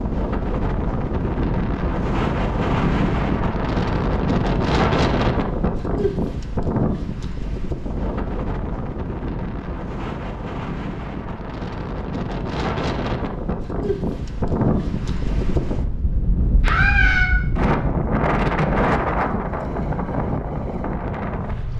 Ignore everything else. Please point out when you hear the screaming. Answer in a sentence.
You can hear the screaming from 16.6 to 17.3 s.